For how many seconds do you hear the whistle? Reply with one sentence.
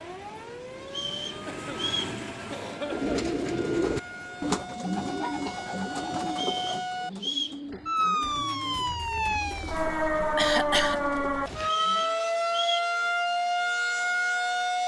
The whistle can be heard for 4 seconds in total.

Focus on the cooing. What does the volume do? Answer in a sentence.
The volume of the cooing goes down.